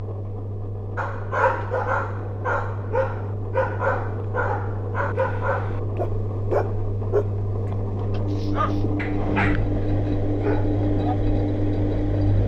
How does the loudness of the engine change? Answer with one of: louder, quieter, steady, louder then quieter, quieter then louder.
louder.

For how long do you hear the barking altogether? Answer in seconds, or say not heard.
10 s.